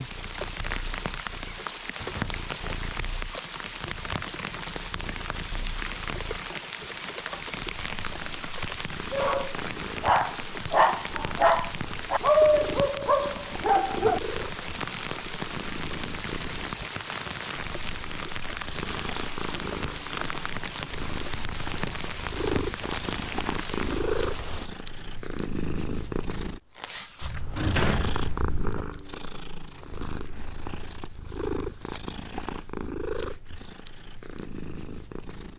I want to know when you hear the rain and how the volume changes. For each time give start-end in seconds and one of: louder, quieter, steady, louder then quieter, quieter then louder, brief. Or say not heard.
0.0-24.7 steady.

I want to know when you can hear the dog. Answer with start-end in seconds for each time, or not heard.
9.1-14.2.